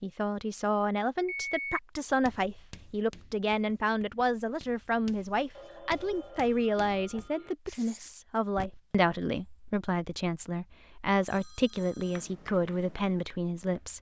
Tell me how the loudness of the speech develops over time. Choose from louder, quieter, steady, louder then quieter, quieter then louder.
steady.